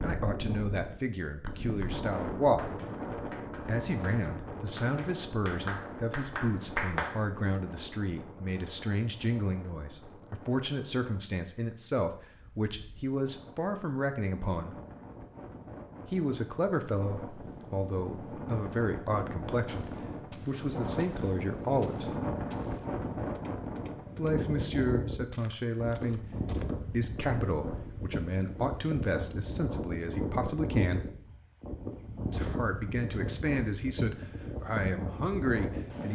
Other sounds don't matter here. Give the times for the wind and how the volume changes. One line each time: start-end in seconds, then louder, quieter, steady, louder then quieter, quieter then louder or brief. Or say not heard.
0.0-36.1 quieter then louder.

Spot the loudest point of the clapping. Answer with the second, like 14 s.
7 s.